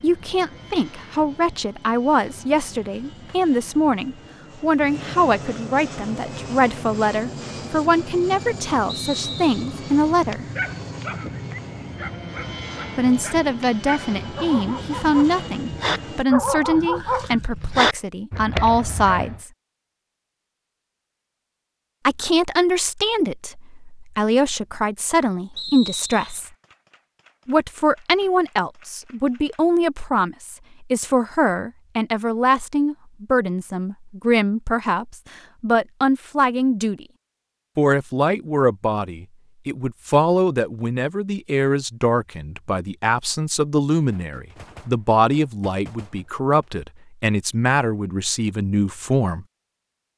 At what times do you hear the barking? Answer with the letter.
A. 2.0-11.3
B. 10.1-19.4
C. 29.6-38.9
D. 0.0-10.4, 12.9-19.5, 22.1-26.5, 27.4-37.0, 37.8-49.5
B.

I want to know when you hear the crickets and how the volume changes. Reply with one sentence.
The crickets can't be heard in this clip.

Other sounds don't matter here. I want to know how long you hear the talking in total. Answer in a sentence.
The talking can be heard for 43 seconds in total.